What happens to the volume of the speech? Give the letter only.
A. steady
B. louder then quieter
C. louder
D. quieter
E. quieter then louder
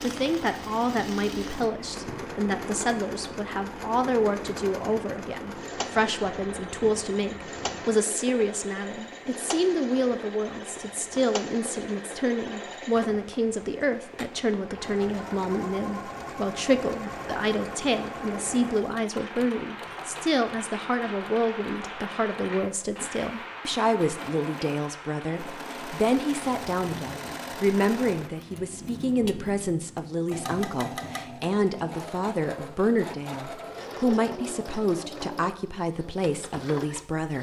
A.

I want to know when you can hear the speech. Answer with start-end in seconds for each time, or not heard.
0.0-37.3.